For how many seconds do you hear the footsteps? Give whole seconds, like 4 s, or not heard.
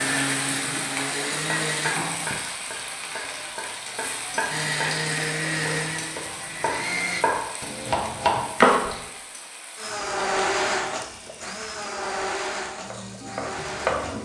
not heard.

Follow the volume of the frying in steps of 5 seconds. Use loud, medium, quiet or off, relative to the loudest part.
loud, medium, quiet.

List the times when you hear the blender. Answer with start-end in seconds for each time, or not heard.
0.0-2.0, 4.5-7.3, 9.8-14.2.